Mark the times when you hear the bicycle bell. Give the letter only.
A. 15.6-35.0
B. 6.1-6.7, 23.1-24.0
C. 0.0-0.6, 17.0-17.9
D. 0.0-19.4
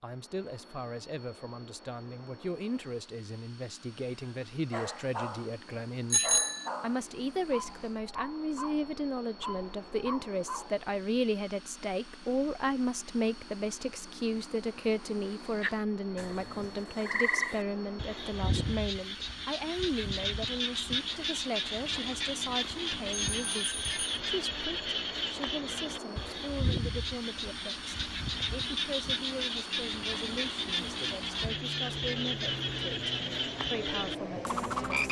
B.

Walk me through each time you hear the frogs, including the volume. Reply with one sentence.
The frogs can be heard from 15.6 to 35.0 s, at a steady volume.